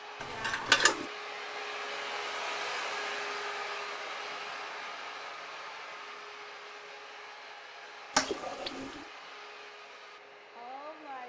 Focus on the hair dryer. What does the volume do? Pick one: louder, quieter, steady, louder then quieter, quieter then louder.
quieter.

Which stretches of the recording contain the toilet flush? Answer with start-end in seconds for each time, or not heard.
0.2-1.1, 8.2-9.1.